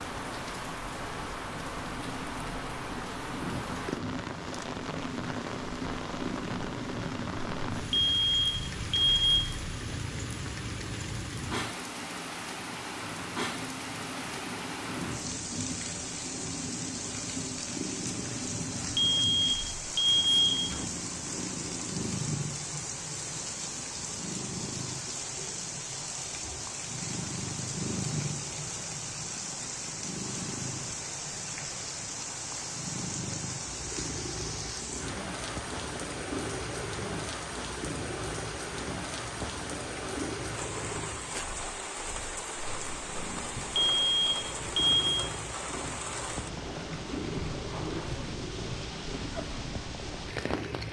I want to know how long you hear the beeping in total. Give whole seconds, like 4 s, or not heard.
5 s.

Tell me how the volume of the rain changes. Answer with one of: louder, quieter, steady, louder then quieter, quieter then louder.
steady.